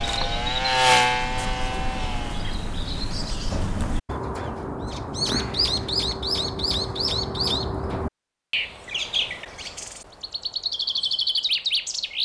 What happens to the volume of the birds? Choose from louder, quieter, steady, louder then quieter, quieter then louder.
louder.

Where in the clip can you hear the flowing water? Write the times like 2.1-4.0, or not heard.
not heard.